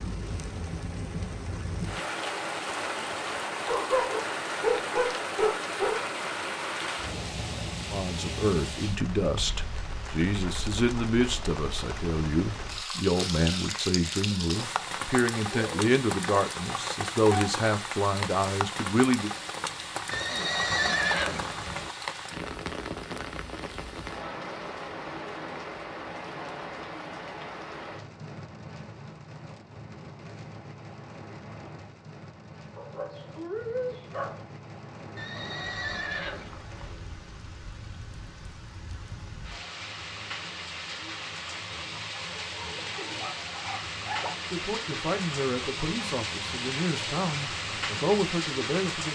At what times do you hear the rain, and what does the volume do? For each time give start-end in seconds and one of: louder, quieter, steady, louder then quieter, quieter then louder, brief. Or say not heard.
0.0-49.1 quieter then louder.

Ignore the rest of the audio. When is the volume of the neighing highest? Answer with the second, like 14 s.
21 s.